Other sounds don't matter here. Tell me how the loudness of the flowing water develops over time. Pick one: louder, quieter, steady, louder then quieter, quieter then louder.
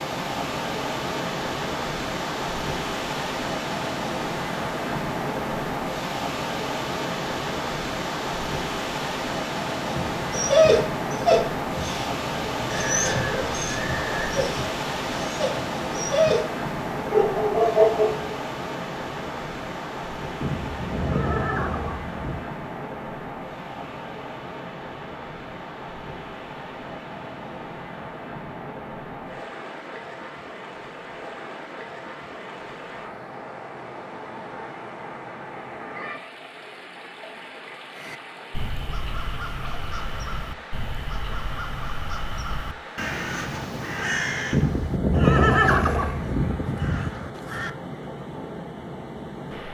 quieter.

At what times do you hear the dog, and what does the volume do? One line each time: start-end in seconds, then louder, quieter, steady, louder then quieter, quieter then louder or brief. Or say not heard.
9.8-18.2 quieter then louder.